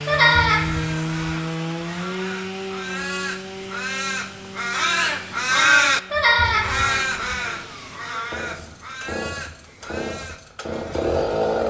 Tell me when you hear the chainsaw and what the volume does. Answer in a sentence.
You can hear the chainsaw from 0.0 to 11.6 s, getting quieter then louder.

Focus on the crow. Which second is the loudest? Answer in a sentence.
The volume of the crow peaks at 6 seconds.